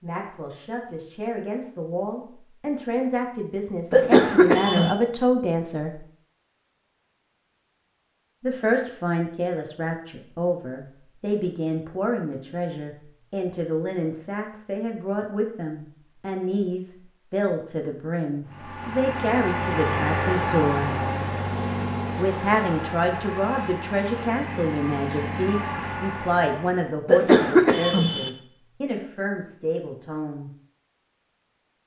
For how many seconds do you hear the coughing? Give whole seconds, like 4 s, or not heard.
2 s.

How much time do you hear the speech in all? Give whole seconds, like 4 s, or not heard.
27 s.